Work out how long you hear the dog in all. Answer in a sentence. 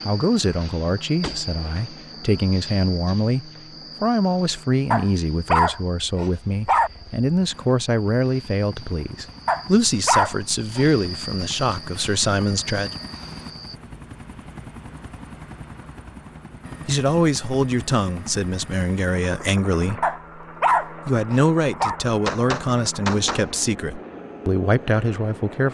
The dog can be heard for 5 seconds in total.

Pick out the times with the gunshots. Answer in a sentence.
You can hear the gunshots from 1.2 to 1.9 s and from 22.2 to 23.5 s.